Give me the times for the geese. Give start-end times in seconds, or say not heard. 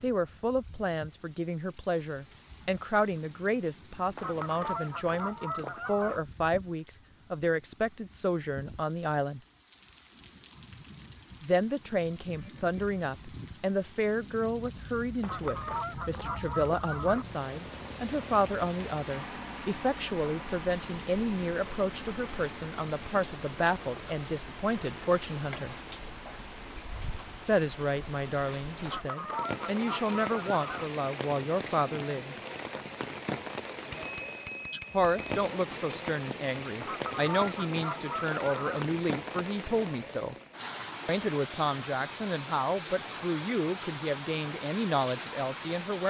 4.2-6.2, 15.2-17.2, 28.9-30.9, 36.8-38.9.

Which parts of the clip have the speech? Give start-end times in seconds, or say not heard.
0.0-9.4, 11.4-25.8, 27.4-32.4, 34.9-40.4, 41.0-46.0.